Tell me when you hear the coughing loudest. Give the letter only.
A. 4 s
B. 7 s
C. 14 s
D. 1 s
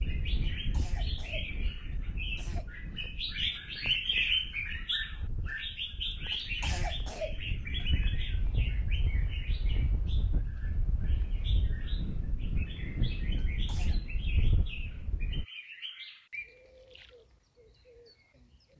B.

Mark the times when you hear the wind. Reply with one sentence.
You can hear the wind from 0.0 to 15.4 s.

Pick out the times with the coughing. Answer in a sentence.
The coughing can be heard from 0.4 to 2.7 s, from 6.3 to 7.8 s and from 13.3 to 14.0 s.